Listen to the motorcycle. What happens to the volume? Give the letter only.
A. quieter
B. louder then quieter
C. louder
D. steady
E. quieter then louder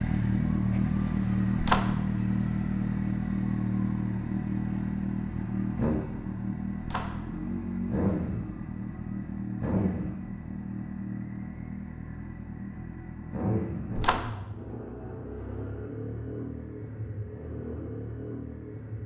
A.